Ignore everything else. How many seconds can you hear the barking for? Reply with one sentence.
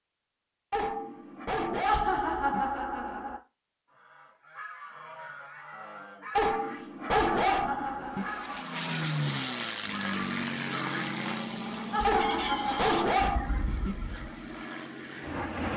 You can hear the barking for 6 seconds altogether.